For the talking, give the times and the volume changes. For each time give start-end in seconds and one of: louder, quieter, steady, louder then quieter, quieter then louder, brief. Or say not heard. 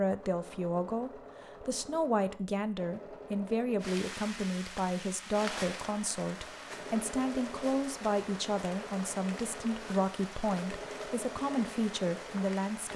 0.0-12.9 steady.